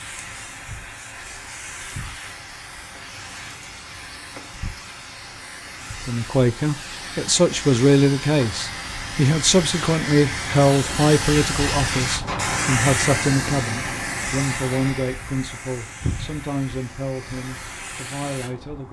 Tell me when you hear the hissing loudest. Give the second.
13 s.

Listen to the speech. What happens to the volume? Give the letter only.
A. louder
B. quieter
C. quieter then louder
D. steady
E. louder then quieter
B.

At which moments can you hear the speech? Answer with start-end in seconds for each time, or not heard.
6.0-18.8.